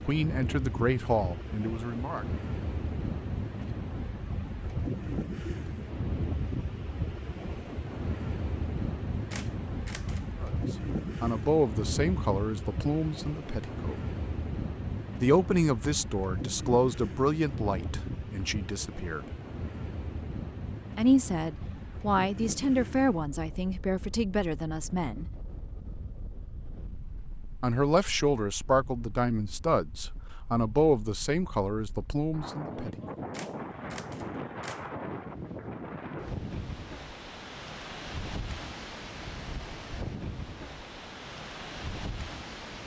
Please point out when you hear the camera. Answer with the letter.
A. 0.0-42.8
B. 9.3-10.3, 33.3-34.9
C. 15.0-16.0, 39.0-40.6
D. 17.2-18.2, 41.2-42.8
B.